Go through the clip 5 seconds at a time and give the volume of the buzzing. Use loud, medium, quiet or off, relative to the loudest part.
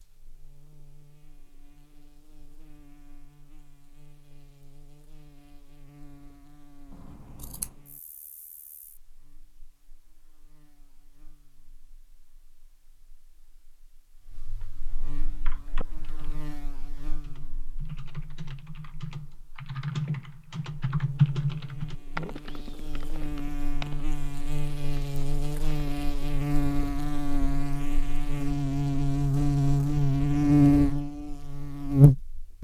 quiet, quiet, quiet, quiet, quiet, medium, loud.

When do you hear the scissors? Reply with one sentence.
The scissors can be heard from 6.9 to 7.8 s.